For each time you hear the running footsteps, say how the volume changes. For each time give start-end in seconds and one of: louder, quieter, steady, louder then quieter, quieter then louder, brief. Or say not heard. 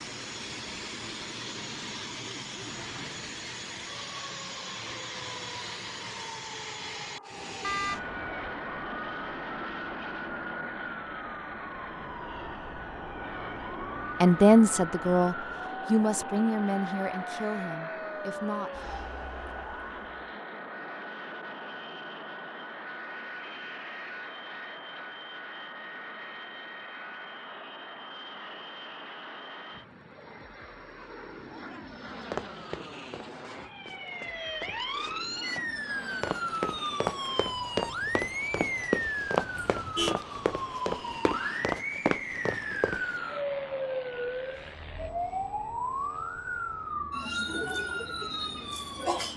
32.2-43.2 louder.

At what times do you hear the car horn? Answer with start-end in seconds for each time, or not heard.
7.6-8.3, 39.8-40.2.